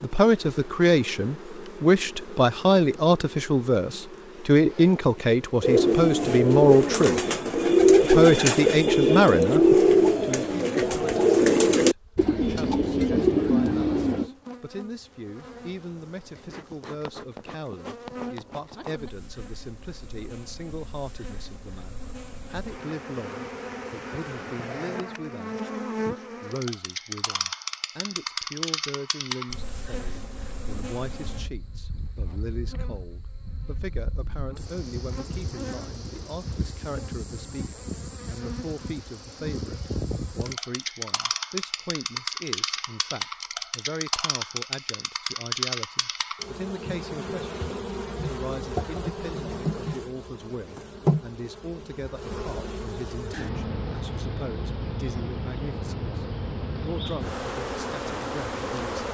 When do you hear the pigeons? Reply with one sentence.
You can hear the pigeons from 5.6 to 14.3 s.